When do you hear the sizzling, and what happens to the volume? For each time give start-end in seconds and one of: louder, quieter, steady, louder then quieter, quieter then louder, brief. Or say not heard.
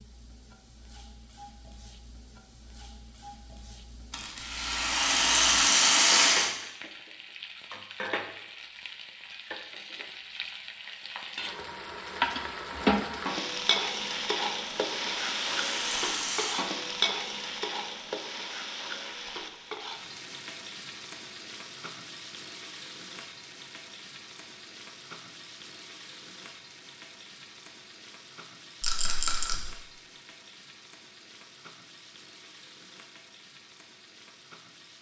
0.0-34.9 louder then quieter.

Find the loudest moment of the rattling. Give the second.
6 s.